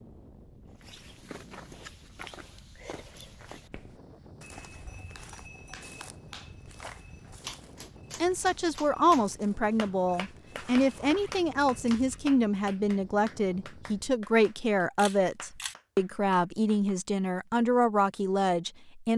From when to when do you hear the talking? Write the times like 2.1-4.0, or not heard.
8.2-19.1.